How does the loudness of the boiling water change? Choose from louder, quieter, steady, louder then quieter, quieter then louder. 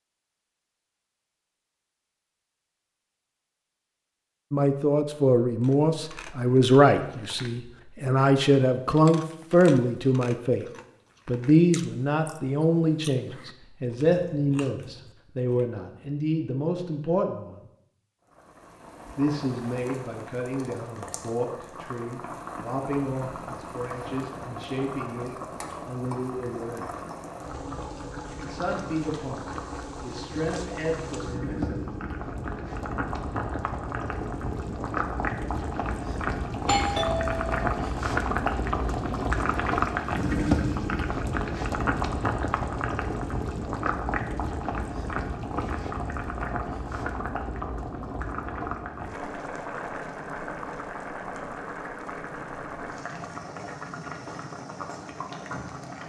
louder then quieter.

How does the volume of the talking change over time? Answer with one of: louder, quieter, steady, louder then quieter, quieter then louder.
quieter.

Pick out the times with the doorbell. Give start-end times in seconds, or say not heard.
36.6-37.6.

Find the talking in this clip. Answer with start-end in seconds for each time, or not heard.
4.5-10.7, 11.2-17.6, 19.1-26.9, 28.4-31.8.